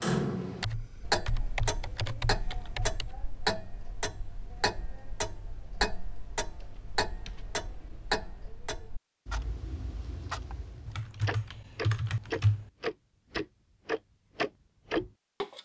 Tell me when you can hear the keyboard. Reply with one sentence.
You can hear the keyboard from 0.6 to 3.1 s, from 6.5 to 8.1 s and from 10.8 to 12.7 s.